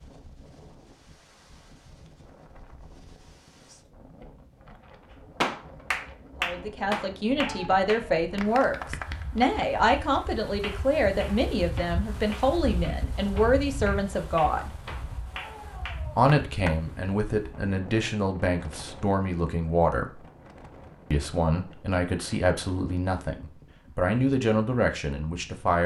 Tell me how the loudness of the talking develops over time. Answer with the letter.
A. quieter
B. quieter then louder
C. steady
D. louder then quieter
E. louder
C.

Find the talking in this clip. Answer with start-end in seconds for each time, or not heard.
6.4-14.7, 16.1-20.2, 21.1-25.8.